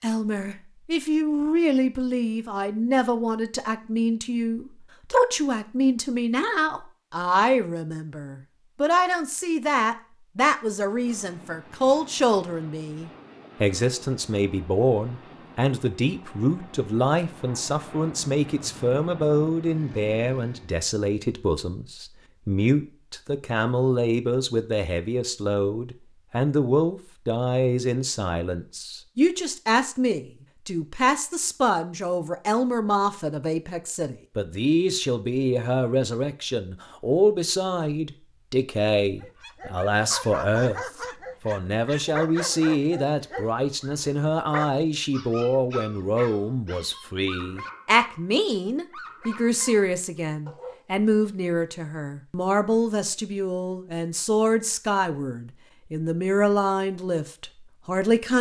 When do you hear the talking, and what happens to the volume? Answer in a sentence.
You can hear the talking from 0.0 to 58.3 s, at a steady volume.